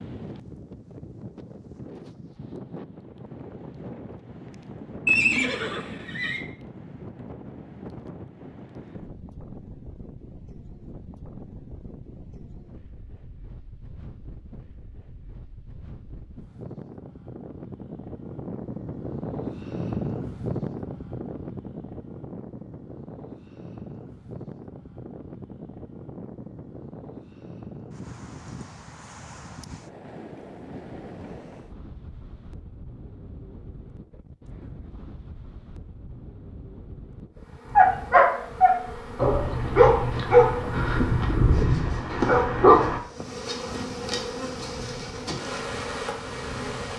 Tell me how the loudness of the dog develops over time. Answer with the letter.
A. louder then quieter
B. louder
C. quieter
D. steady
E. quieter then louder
C.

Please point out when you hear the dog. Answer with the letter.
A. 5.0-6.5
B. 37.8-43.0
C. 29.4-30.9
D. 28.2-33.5
B.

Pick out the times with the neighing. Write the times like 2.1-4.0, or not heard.
5.0-6.5.